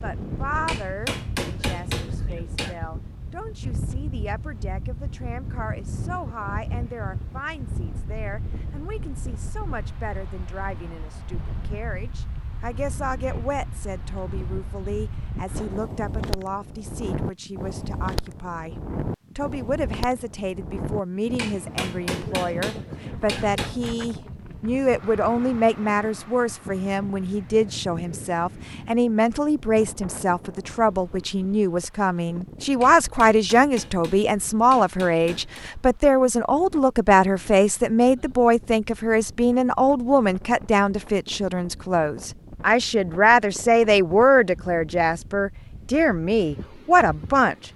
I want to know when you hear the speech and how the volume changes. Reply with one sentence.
The speech can be heard from 0.0 to 47.5 s, getting louder.